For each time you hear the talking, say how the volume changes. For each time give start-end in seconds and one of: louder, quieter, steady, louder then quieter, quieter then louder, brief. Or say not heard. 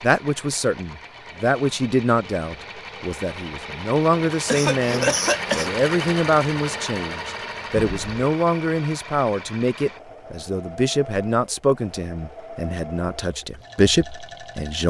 0.0-14.8 steady.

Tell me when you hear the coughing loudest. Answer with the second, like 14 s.
5 s.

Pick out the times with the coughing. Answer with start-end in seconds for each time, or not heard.
4.5-5.7, 7.8-8.2.